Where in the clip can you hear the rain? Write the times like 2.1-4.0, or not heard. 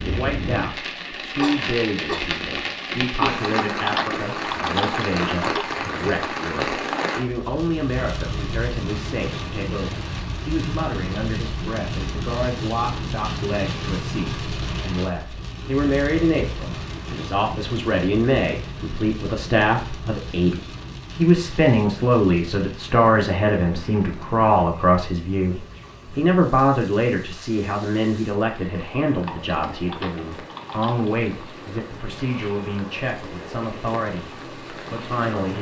0.0-35.5.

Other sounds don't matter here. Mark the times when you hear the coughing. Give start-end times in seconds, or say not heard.
1.4-2.2.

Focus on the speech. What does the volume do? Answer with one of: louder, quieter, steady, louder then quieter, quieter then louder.
louder then quieter.